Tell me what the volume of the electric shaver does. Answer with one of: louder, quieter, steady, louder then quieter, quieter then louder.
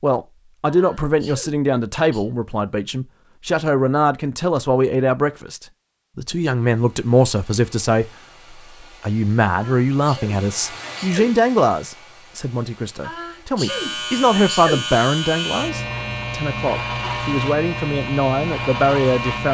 steady.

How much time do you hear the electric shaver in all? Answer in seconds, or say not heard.
6 s.